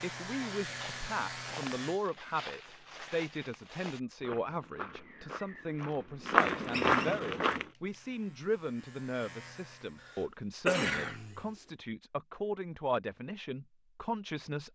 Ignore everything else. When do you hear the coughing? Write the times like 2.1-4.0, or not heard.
10.0-11.5.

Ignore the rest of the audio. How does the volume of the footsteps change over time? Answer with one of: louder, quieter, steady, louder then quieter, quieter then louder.
louder.